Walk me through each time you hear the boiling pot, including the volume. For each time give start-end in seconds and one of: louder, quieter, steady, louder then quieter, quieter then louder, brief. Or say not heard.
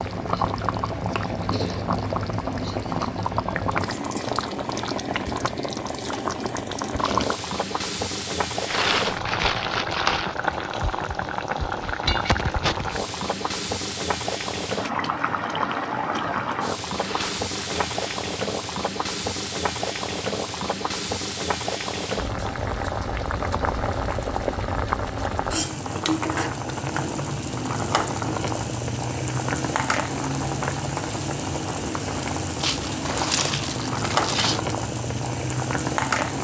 0.0-36.3 steady.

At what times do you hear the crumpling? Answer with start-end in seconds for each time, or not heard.
8.7-10.3, 16.9-18.0, 32.6-34.6.